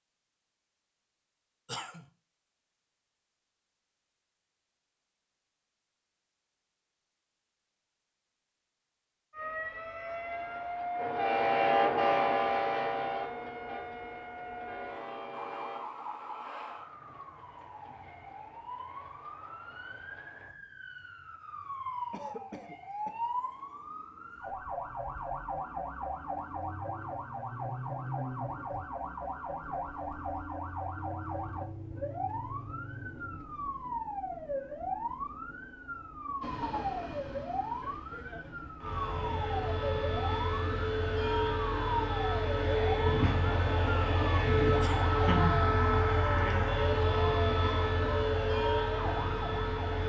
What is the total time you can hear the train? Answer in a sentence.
You can hear the train for 24 seconds altogether.